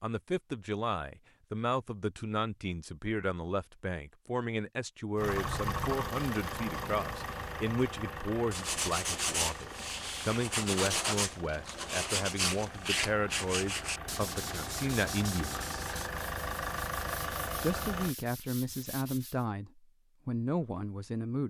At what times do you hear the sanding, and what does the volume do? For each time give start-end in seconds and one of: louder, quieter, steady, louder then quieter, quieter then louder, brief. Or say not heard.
8.5-19.4 quieter.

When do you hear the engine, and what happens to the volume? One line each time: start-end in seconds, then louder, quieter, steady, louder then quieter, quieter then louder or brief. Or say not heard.
5.2-18.1 quieter then louder.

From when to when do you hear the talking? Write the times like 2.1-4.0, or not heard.
0.0-15.8, 17.5-21.4.